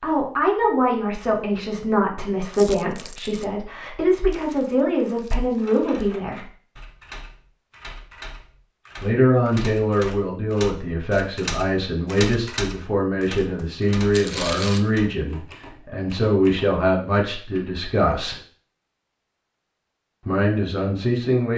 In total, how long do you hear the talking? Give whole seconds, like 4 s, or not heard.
17 s.